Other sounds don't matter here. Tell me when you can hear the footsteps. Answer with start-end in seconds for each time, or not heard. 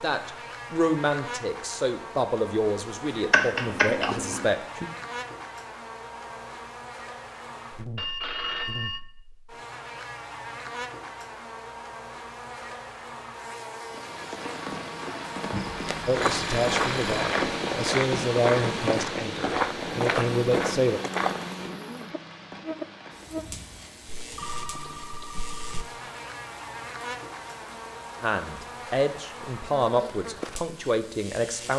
15.8-21.8.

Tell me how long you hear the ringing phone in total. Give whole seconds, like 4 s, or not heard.
5 s.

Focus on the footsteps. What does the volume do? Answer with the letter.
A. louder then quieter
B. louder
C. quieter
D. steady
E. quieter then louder
D.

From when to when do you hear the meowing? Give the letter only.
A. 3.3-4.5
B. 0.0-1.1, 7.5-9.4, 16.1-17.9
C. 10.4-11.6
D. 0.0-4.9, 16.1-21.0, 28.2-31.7
A.